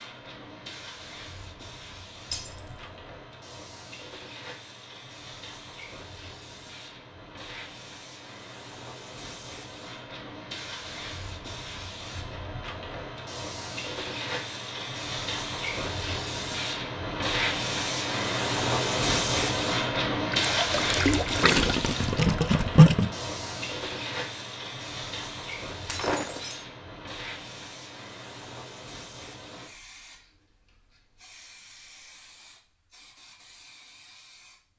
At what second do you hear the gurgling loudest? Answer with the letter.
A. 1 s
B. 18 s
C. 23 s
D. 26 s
C.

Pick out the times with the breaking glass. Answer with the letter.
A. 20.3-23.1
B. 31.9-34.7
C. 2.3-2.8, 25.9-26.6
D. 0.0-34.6
C.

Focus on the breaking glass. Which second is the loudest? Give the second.
26 s.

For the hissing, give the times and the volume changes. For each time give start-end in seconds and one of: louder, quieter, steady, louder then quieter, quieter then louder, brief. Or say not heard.
0.0-34.6 louder then quieter.